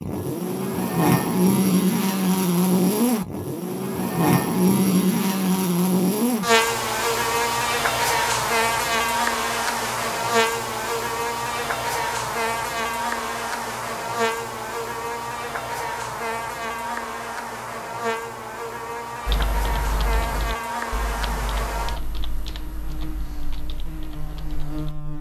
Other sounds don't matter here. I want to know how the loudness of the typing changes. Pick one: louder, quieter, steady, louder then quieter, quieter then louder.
quieter.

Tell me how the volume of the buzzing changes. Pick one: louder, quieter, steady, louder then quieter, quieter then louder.
quieter.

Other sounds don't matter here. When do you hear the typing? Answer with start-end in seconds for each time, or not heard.
19.2-25.1.